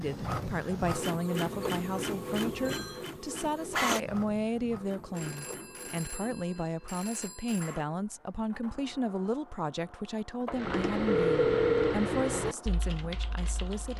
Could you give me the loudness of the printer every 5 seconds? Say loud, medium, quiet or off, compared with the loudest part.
loud, quiet, quiet.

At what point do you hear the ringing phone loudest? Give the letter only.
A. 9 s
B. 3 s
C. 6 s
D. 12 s
D.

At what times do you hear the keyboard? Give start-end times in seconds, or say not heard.
10.4-13.9.